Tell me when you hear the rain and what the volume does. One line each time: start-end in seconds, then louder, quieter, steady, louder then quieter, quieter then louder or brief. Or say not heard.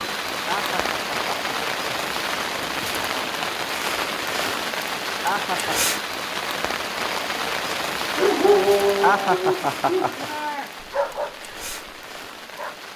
0.0-12.9 quieter.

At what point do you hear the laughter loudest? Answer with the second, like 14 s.
9 s.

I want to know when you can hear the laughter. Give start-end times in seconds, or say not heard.
0.5-1.9, 5.2-6.0, 9.0-10.2.